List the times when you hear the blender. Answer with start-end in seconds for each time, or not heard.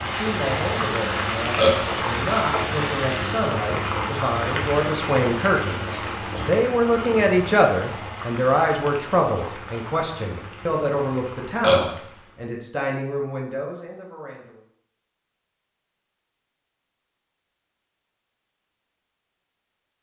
0.0-3.4.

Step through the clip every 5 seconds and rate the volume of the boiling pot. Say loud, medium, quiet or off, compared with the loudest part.
loud, medium, quiet, off.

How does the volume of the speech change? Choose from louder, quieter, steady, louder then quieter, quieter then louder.
louder then quieter.